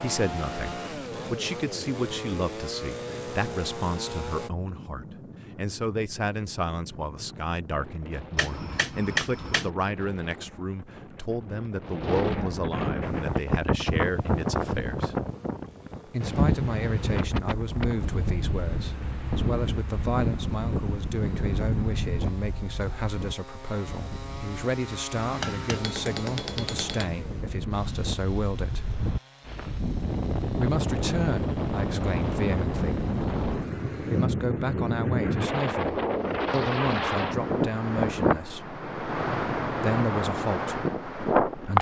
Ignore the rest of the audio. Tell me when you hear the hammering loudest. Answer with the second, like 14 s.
9 s.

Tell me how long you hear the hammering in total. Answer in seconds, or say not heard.
3 s.